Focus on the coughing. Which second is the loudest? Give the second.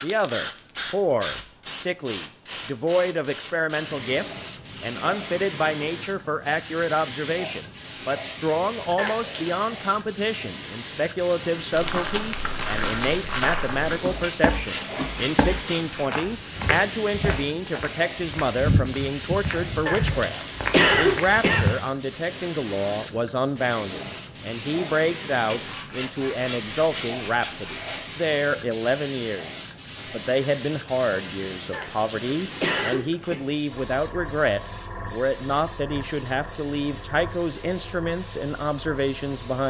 21 s.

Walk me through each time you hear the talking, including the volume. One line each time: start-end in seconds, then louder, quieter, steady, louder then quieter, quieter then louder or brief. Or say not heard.
0.0-39.6 steady.